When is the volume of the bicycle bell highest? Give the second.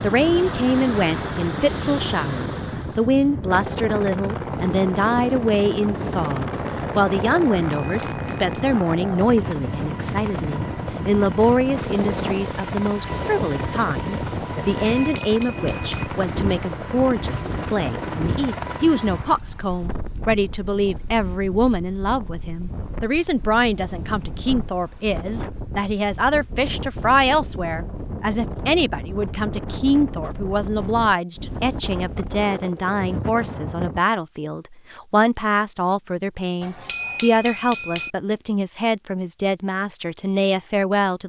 37 s.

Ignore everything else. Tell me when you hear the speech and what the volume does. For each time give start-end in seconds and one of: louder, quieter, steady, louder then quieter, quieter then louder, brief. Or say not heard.
0.0-41.2 steady.